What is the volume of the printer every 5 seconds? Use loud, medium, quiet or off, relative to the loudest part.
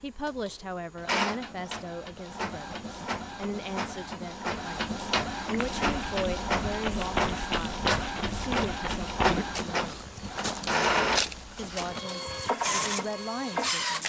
medium, loud, loud.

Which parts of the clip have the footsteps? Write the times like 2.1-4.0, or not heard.
5.5-12.6.